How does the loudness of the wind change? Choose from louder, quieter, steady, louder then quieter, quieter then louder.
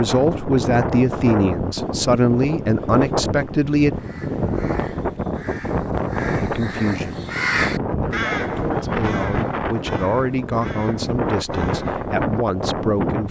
steady.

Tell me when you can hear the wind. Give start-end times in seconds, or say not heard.
0.0-13.2.